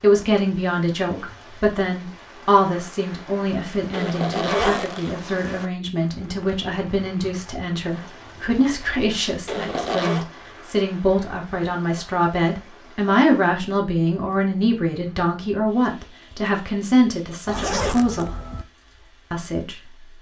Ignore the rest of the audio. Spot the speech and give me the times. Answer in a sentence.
You can hear the speech from 0.0 to 18.3 s and from 19.3 to 19.8 s.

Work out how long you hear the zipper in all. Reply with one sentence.
The zipper can be heard for 3 seconds in total.